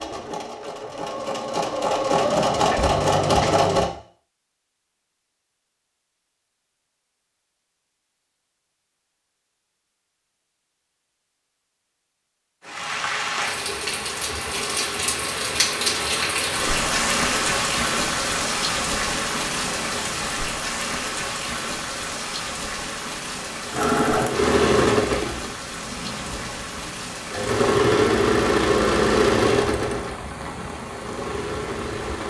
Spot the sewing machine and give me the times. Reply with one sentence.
You can hear the sewing machine from 0.0 to 3.9 s and from 23.7 to 32.2 s.